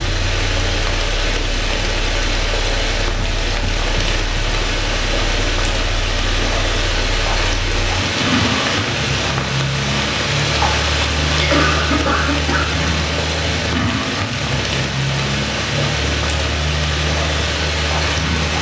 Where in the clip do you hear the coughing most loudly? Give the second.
12 s.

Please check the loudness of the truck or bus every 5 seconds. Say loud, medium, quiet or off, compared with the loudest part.
medium, loud, loud, loud.